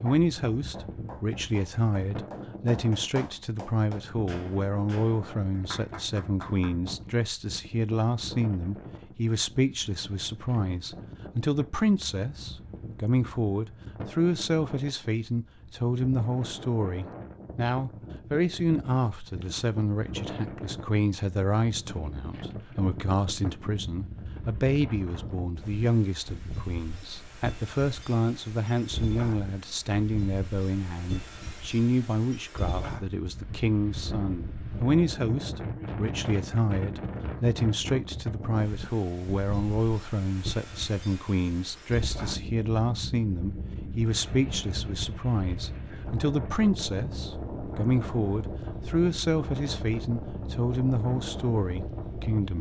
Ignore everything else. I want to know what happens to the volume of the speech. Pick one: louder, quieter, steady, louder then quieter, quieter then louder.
steady.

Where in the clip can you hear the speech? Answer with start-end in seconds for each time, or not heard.
0.0-52.5.